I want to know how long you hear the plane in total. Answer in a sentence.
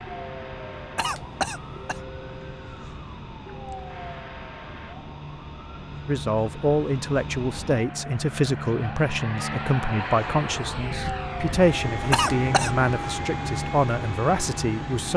The plane can be heard for 15 seconds in total.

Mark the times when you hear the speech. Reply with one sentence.
You can hear the speech from 6.0 to 15.1 s.